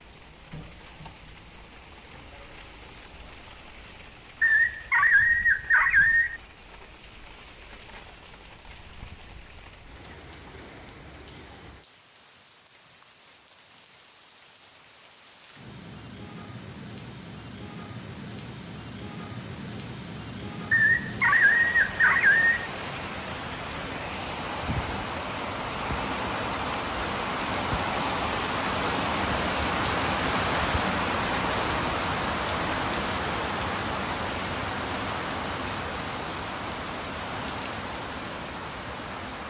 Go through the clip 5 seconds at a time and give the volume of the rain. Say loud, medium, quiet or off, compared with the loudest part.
quiet, quiet, quiet, quiet, medium, loud, loud, medium.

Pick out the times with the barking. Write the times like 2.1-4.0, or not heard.
4.4-6.4, 20.7-22.7.